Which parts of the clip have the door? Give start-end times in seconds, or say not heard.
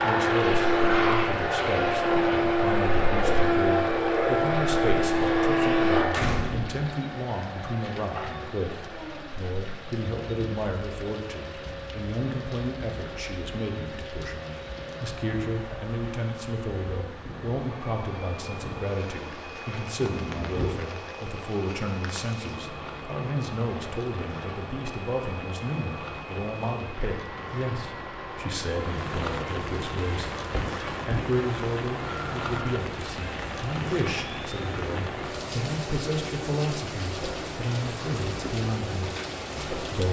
6.1-6.9, 20.0-20.8, 30.5-31.4.